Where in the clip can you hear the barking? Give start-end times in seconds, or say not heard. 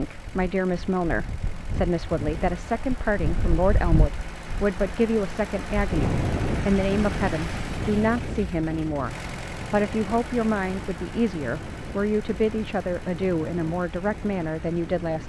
not heard.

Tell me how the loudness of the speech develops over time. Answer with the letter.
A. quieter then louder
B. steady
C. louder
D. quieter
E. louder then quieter
B.